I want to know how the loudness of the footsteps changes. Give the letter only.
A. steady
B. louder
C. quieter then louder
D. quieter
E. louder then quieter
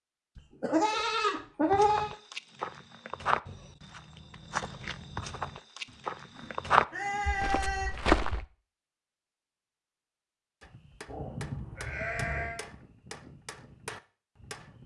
E.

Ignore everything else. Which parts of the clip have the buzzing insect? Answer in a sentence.
You can't hear the buzzing insect here.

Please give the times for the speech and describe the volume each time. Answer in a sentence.
The speech can't be heard in this clip.